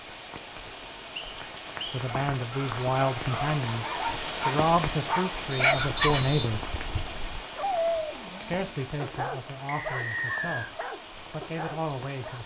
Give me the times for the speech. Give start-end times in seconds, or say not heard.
1.9-6.7, 8.4-12.4.